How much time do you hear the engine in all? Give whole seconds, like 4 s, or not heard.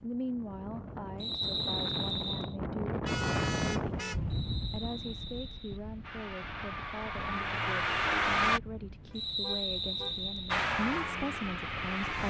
4 s.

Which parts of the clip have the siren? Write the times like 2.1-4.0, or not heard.
not heard.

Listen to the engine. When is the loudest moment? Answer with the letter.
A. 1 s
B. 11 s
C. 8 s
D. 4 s
C.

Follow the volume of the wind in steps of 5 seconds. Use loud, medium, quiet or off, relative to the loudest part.
loud, quiet, quiet.